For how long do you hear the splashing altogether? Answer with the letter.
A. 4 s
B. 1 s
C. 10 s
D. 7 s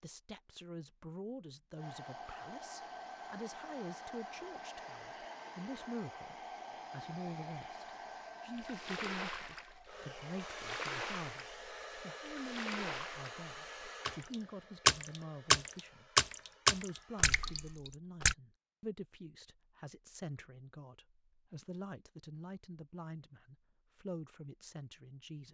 C.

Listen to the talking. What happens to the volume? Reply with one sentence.
The volume of the talking stays about the same.